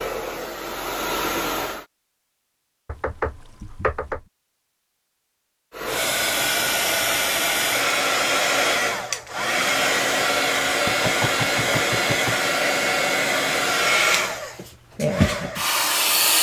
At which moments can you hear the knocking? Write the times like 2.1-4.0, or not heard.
2.9-4.2, 10.8-12.5.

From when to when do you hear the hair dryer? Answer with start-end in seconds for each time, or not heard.
0.0-1.9, 5.7-16.3.